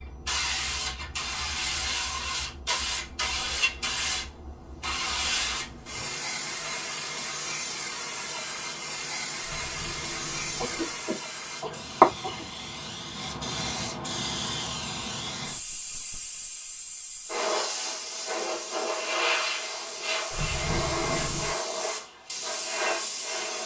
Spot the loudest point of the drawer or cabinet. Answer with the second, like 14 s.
21 s.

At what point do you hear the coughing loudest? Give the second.
11 s.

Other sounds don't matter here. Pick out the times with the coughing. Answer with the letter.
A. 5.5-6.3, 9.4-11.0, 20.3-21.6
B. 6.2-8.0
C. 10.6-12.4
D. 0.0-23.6
C.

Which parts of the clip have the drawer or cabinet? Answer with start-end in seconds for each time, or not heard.
5.5-6.3, 9.4-11.0, 20.3-21.6.